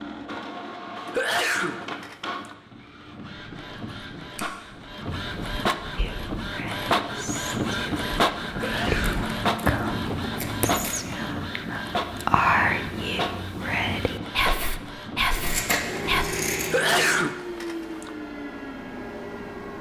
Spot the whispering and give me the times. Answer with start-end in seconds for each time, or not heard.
6.0-16.2.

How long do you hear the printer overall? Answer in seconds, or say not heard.
20 s.